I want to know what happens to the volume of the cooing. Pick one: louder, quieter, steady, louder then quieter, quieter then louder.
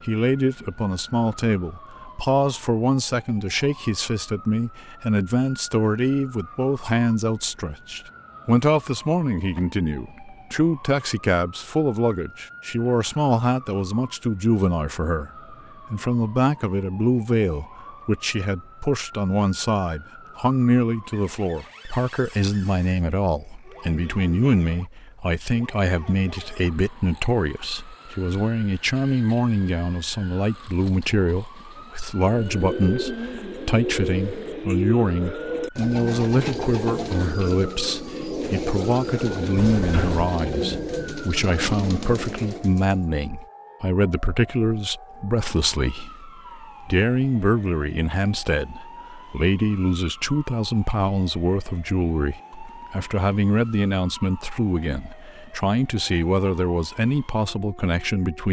steady.